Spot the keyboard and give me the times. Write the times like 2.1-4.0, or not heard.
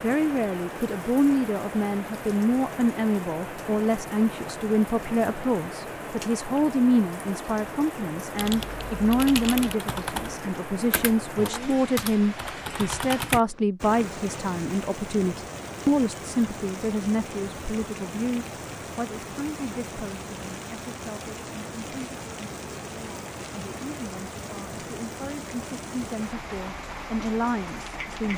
8.3-13.4.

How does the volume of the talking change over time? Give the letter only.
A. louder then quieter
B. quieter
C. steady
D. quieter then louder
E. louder
B.